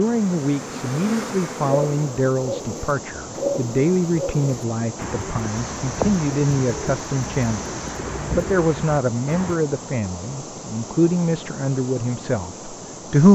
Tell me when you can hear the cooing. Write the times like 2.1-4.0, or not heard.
1.6-9.6.